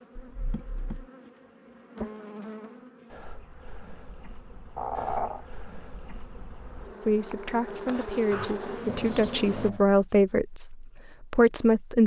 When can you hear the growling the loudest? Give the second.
5 s.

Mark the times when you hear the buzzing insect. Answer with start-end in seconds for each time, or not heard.
0.0-9.7.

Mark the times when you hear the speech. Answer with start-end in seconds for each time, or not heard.
7.0-12.0.